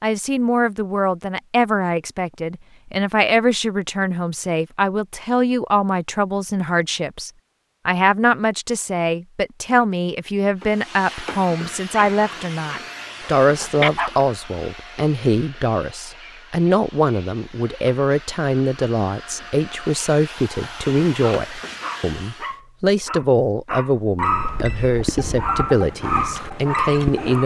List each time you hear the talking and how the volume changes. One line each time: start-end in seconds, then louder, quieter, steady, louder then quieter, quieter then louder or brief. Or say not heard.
0.0-27.4 steady.